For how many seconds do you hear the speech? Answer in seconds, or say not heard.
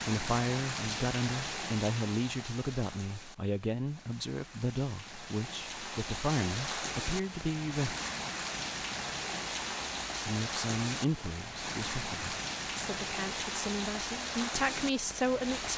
13 s.